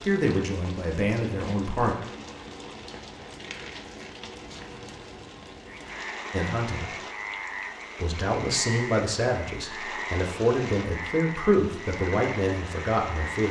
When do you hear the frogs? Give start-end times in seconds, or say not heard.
5.7-13.4.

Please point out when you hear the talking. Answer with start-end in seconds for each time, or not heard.
0.0-1.9, 6.3-6.8, 8.0-13.4.